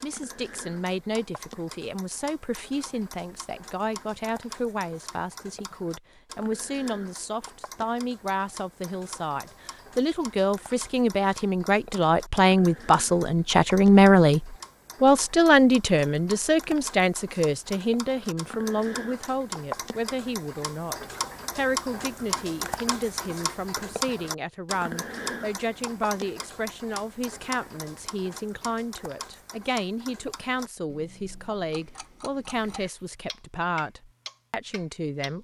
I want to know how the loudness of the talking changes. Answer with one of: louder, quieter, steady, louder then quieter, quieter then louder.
louder then quieter.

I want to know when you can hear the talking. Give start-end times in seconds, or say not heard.
0.0-35.4.